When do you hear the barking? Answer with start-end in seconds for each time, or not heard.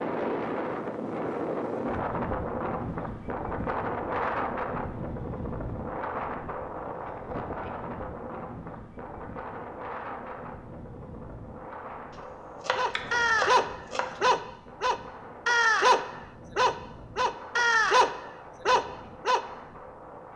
12.8-19.4.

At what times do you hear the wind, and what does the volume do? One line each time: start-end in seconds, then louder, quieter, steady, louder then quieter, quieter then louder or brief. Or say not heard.
0.0-20.3 quieter.